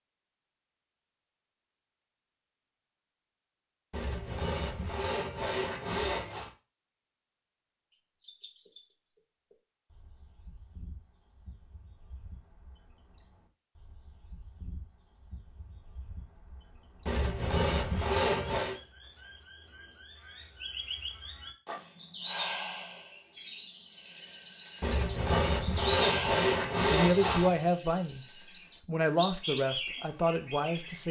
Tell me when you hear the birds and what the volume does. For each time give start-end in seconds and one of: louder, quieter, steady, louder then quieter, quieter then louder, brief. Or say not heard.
7.9-31.0 louder.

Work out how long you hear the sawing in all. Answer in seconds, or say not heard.
7 s.